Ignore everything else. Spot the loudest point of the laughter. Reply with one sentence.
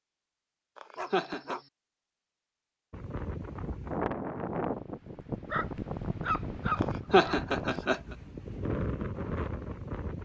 The volume of the laughter peaks at 7 seconds.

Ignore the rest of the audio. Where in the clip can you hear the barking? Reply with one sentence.
You can hear the barking from 0.9 to 1.7 s and from 5.5 to 7.4 s.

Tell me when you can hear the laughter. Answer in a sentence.
The laughter can be heard from 0.8 to 1.6 s and from 6.8 to 8.2 s.